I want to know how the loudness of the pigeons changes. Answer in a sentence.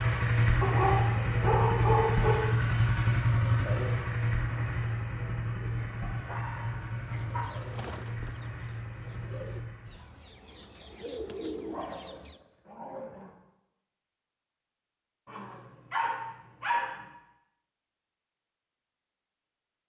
The volume of the pigeons goes down, then up.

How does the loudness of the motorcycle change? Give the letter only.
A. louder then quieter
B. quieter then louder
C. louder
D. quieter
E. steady
D.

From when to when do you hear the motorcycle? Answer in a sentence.
The motorcycle can be heard from 0.0 to 10.1 s.